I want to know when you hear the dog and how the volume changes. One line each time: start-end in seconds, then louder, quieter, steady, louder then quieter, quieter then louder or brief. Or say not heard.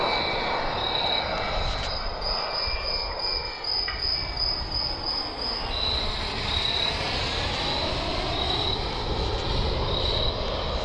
not heard.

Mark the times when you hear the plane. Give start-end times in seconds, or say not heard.
0.0-10.8.